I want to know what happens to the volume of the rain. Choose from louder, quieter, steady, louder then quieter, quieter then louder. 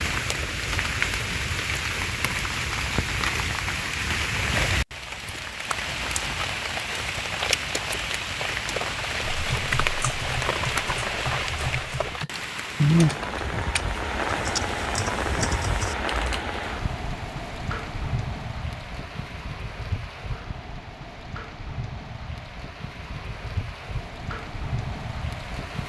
quieter.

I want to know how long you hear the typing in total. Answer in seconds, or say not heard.
7 s.